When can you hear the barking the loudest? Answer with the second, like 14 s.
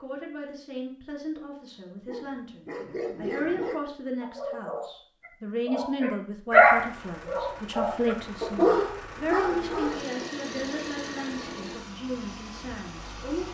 7 s.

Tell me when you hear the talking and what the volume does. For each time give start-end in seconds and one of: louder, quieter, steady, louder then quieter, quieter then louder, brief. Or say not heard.
0.0-13.4 louder then quieter.